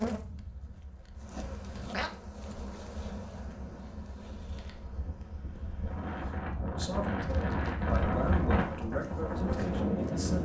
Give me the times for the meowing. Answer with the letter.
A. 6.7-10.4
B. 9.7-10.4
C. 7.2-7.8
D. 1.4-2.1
D.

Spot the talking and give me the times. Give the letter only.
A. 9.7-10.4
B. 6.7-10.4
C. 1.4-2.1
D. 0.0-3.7
B.